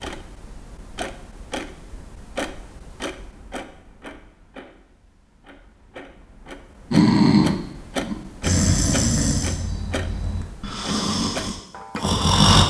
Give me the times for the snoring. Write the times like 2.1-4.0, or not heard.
6.9-12.6.